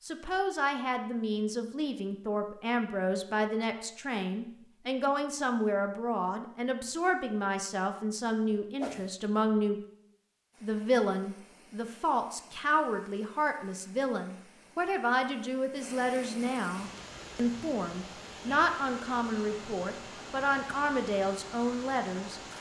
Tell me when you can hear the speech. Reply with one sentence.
The speech can be heard from 0.0 to 9.8 s and from 10.6 to 22.4 s.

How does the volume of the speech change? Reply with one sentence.
The loudness of the speech stays about the same.